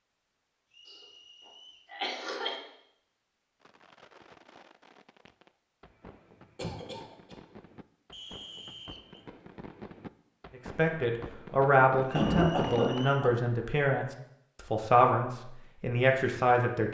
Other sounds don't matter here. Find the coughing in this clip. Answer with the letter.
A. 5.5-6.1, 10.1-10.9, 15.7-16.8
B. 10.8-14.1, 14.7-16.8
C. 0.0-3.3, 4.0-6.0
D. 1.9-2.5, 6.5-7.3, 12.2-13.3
D.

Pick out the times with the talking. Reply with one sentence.
The talking can be heard from 10.8 to 14.1 s and from 14.7 to 16.8 s.